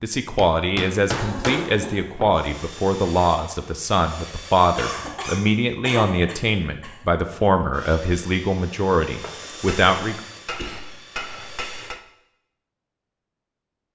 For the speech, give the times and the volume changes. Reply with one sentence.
The speech can be heard from 0.0 to 10.2 s, at a steady volume.